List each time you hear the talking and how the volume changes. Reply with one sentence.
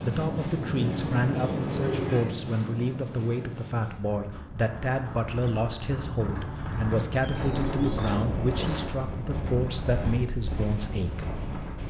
You can hear the talking from 0.0 to 11.3 s, at a steady volume.